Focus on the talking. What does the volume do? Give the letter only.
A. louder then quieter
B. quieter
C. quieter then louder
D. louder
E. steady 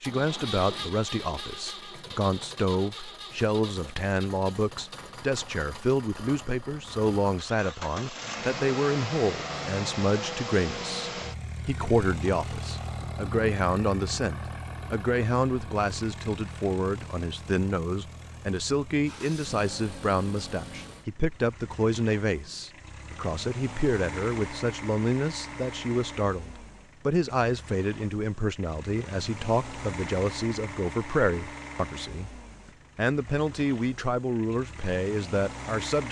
E.